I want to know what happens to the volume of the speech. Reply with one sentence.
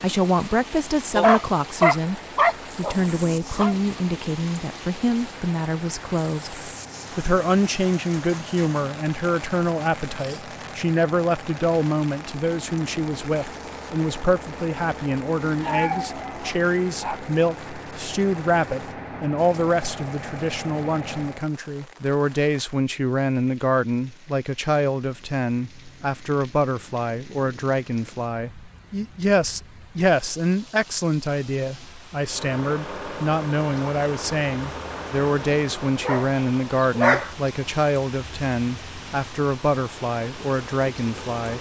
The loudness of the speech stays about the same.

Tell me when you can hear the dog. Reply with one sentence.
You can hear the dog from 1.1 to 3.8 s, from 15.2 to 17.2 s and from 36.0 to 37.3 s.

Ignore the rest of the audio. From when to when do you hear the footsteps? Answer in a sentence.
You can't hear the footsteps here.